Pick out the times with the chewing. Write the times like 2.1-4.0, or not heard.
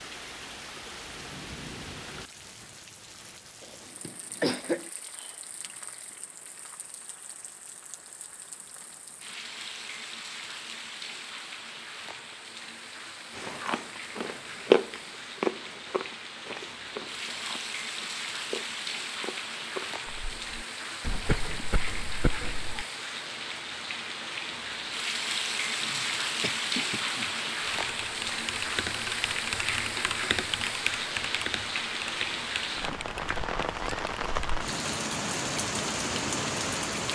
13.3-20.6.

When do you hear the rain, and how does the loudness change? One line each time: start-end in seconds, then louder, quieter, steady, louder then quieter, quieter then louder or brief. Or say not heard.
0.0-37.1 louder.